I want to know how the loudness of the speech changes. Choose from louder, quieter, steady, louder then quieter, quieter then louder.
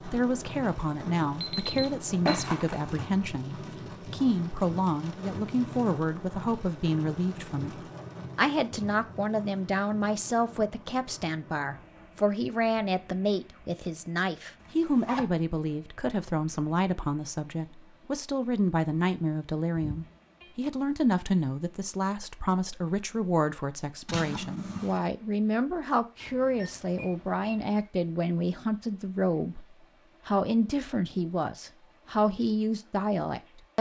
steady.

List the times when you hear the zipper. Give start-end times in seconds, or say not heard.
2.2-3.1, 14.6-15.2, 24.1-25.1.